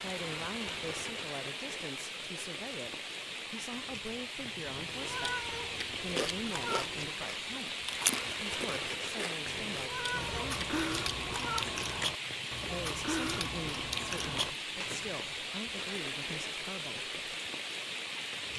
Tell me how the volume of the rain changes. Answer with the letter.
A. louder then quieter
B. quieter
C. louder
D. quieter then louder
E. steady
E.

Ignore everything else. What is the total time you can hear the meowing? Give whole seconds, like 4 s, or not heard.
5 s.